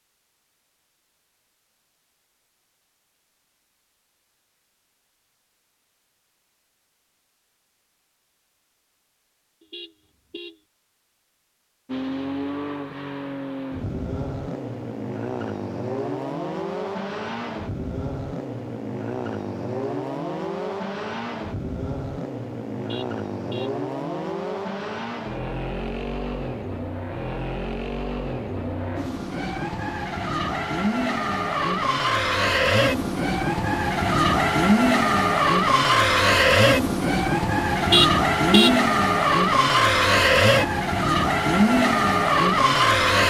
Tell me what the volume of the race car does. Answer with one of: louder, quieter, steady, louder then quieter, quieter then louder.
louder.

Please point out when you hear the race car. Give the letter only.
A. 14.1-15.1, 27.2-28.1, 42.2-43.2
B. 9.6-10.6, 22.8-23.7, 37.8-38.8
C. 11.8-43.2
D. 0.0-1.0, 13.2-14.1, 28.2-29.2
C.